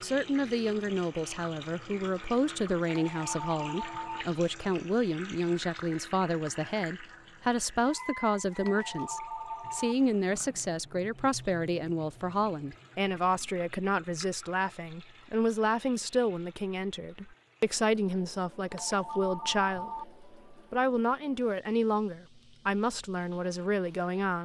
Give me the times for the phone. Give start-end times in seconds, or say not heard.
2.9-4.2, 8.6-9.9, 18.7-20.1.